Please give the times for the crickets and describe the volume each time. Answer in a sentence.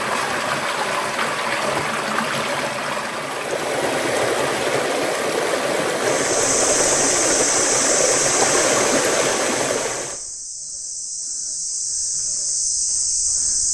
You can hear the crickets from 6.0 to 13.6 s, getting quieter then louder.